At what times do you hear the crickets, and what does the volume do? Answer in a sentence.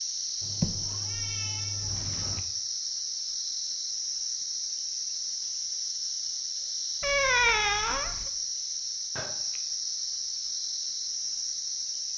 You can hear the crickets from 0.0 to 12.1 s, at a steady volume.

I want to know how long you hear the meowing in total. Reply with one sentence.
The meowing can be heard for 3 seconds in total.